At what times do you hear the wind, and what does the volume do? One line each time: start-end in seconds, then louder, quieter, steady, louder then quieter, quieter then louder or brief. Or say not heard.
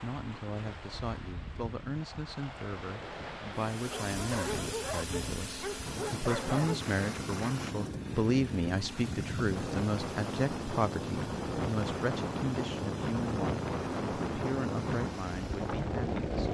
0.0-16.4 louder.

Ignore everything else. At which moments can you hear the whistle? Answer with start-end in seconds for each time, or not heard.
not heard.